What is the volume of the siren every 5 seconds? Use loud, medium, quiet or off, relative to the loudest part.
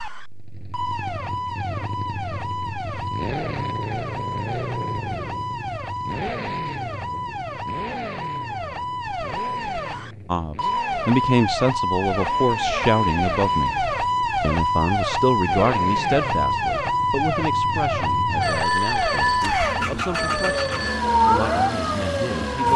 medium, medium, loud, loud, loud.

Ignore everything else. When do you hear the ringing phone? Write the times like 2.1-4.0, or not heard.
18.4-21.1.